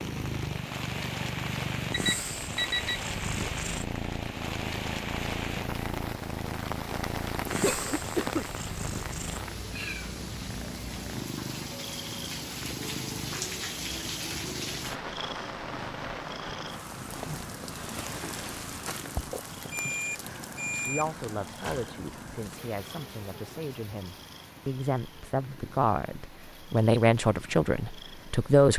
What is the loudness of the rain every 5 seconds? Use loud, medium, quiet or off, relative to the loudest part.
loud, loud, loud, loud, medium, quiet.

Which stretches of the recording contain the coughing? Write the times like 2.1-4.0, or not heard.
7.6-8.4.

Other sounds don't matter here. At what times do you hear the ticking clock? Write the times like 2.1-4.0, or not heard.
not heard.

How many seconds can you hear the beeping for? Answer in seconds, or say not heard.
3 s.